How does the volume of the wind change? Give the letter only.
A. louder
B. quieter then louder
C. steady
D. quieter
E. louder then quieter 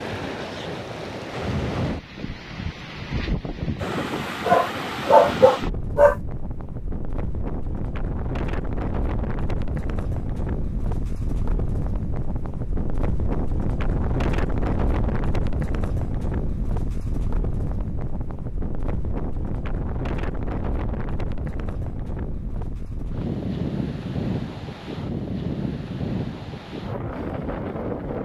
C.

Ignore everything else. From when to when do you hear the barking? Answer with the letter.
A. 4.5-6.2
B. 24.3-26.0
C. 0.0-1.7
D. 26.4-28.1
A.